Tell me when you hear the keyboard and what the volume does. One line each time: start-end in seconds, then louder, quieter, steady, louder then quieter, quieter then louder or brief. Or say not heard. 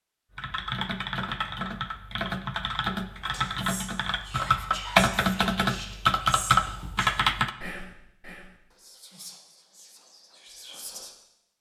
0.3-7.5 louder.